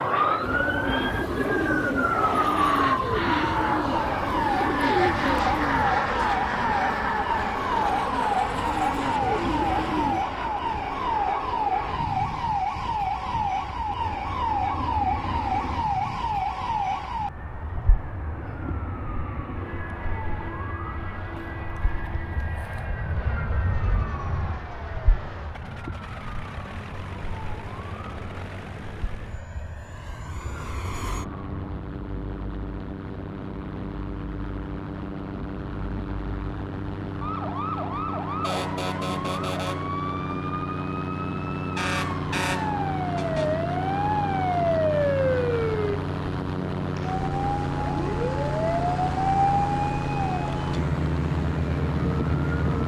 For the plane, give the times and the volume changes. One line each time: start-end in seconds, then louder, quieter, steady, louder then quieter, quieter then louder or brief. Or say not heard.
0.0-52.8 quieter then louder.